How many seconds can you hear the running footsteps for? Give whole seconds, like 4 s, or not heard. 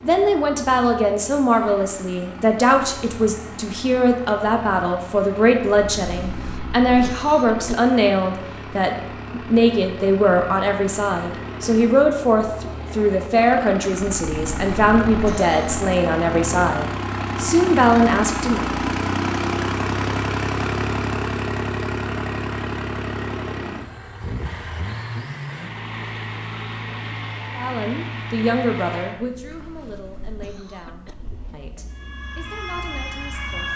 not heard.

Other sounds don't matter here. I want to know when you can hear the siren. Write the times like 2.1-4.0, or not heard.
31.9-33.7.